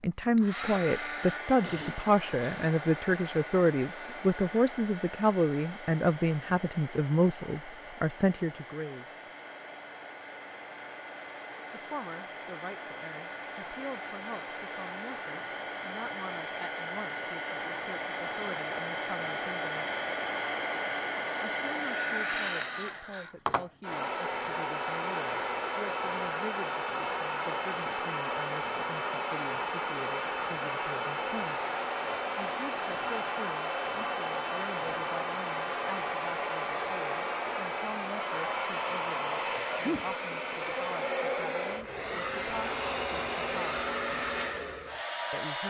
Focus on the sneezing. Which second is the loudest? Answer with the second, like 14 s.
40 s.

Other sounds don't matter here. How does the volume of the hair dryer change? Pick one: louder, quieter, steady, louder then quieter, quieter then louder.
louder.